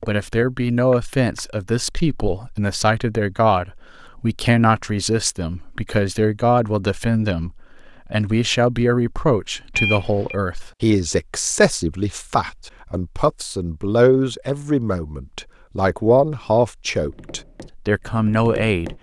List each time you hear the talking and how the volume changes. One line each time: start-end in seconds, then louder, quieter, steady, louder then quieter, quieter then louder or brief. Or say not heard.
0.1-18.9 steady.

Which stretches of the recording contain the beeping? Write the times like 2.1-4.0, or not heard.
9.7-10.3.